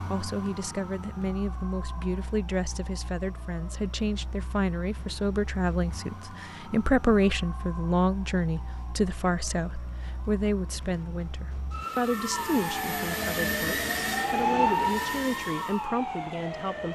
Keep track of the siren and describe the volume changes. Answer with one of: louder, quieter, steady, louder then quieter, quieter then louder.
louder.